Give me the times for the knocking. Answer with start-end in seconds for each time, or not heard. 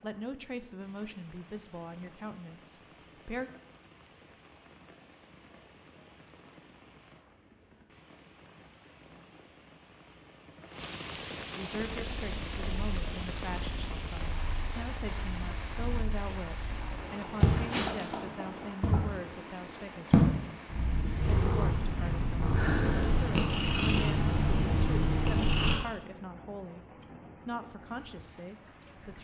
17.9-19.0.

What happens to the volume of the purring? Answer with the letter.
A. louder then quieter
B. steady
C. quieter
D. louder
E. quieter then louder
D.